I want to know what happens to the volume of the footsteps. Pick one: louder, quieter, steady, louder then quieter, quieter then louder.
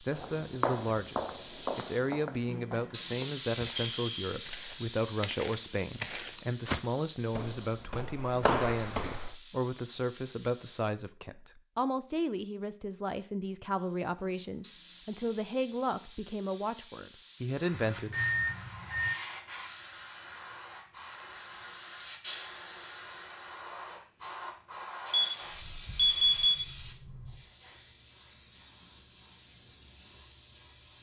quieter then louder.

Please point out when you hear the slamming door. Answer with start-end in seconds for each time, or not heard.
not heard.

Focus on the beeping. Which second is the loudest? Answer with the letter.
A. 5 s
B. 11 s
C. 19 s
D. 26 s
D.